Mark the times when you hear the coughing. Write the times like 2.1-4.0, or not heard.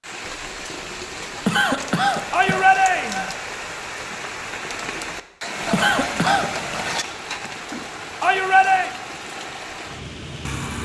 1.4-2.6, 5.7-6.5.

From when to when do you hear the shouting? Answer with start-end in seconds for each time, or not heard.
2.3-3.3, 8.2-8.9.